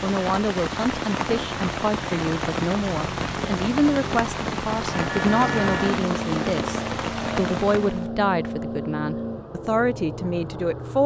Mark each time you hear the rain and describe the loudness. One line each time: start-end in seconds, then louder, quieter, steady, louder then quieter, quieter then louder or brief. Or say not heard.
0.0-8.1 steady.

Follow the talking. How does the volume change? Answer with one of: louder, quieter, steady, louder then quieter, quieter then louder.
steady.